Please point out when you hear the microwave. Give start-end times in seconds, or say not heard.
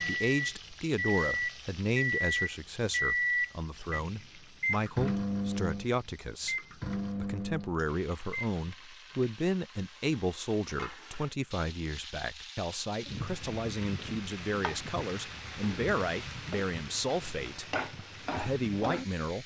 0.0-8.8.